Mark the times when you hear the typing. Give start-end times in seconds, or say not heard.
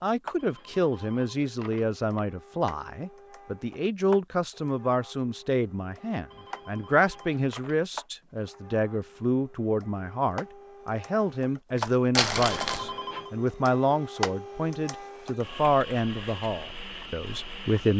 not heard.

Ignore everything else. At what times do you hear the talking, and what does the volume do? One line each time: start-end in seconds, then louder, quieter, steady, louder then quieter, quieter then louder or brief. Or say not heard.
0.0-17.9 steady.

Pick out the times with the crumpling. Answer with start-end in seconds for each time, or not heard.
11.8-12.9.